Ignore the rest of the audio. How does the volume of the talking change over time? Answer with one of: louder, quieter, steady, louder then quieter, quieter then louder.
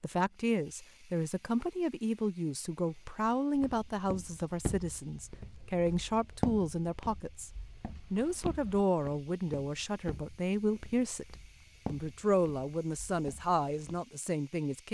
steady.